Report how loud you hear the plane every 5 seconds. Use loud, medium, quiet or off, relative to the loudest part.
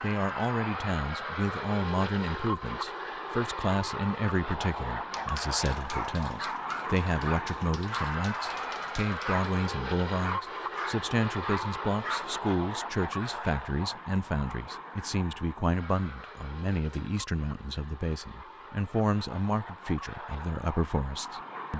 loud, loud, loud, medium, medium.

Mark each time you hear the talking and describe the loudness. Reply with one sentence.
The talking can be heard from 0.0 to 21.7 s, at a steady volume.